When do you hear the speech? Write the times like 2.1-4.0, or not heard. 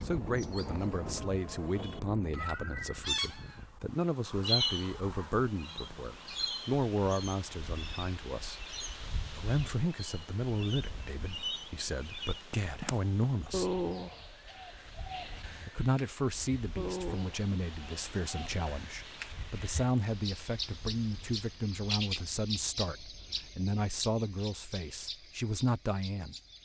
0.0-8.6, 9.3-13.8, 15.7-26.4.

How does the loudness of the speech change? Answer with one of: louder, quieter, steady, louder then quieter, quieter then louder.
steady.